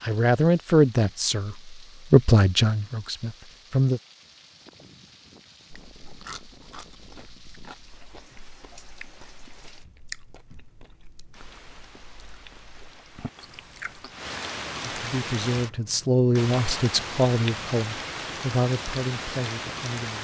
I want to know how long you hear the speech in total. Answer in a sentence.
You can hear the speech for 9 seconds altogether.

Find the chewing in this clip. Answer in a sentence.
The chewing can be heard from 5.7 to 14.3 s.